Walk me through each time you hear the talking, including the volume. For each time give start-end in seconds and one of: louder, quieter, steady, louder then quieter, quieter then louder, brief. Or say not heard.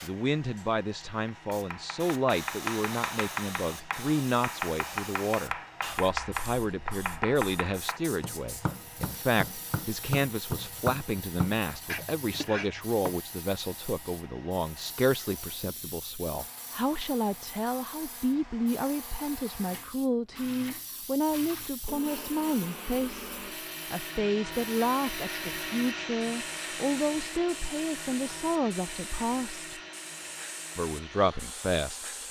0.0-29.8 steady
30.8-32.0 brief.